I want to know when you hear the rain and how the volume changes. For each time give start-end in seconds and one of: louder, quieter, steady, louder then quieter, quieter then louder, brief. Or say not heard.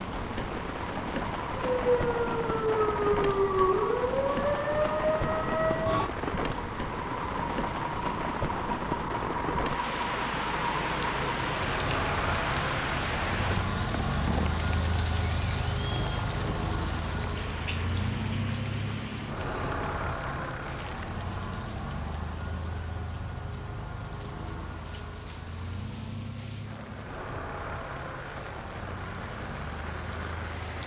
0.0-30.8 quieter.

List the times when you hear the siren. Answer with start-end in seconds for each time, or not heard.
1.6-6.1.